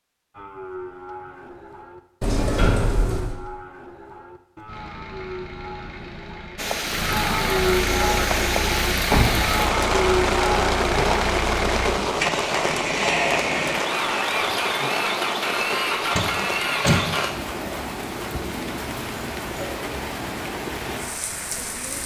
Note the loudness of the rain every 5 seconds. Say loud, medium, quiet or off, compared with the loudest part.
off, loud, loud, medium, medium.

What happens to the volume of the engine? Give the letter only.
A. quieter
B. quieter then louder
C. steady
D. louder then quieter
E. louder
E.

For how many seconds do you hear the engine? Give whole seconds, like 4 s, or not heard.
13 s.